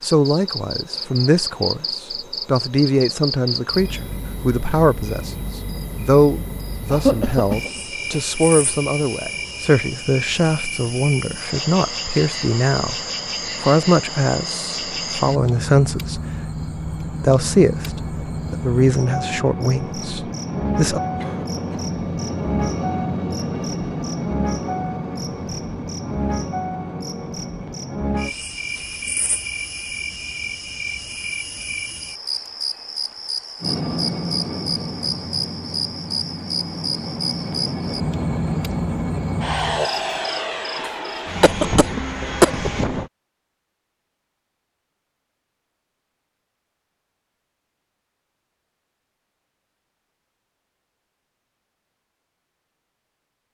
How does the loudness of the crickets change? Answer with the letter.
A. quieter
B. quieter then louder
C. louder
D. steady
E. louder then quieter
D.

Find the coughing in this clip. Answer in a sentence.
You can hear the coughing from 6.9 to 8.2 s, from 21.1 to 21.8 s and from 41.4 to 42.9 s.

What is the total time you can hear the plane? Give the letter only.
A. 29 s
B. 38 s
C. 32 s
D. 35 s
B.